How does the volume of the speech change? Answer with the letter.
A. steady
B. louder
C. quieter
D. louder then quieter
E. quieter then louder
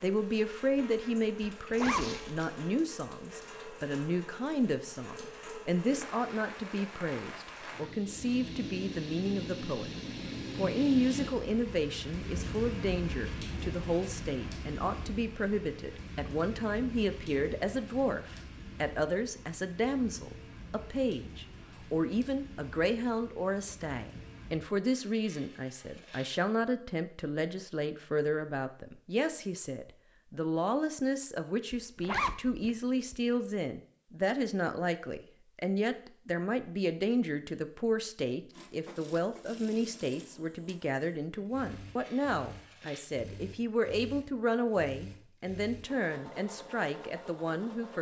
A.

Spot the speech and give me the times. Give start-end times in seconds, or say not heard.
0.0-9.9, 10.6-47.9.